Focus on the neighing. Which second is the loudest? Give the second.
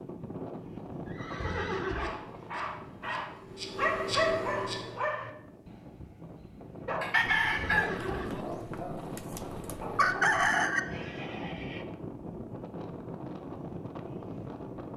2 s.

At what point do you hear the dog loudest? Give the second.
4 s.